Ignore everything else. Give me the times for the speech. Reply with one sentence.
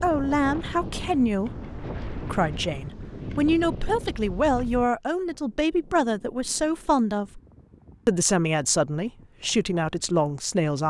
You can hear the speech from 0.0 to 7.4 s and from 8.1 to 10.8 s.